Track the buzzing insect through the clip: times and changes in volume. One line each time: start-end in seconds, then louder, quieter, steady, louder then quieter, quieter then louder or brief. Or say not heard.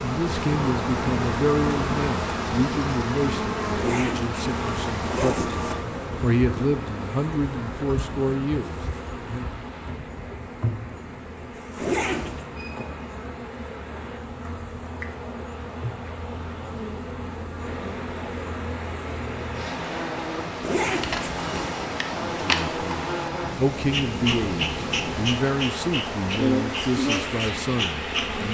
0.0-28.4 quieter then louder.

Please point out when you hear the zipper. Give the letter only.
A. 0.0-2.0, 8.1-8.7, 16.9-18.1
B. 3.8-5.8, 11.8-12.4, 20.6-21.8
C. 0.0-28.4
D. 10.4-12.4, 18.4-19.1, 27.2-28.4
B.